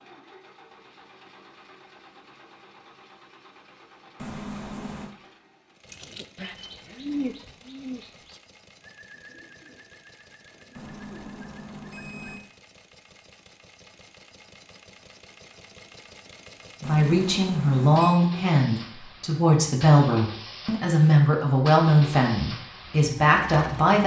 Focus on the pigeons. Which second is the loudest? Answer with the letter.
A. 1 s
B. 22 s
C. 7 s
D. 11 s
C.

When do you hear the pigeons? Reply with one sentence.
You can hear the pigeons from 5.8 to 12.3 s.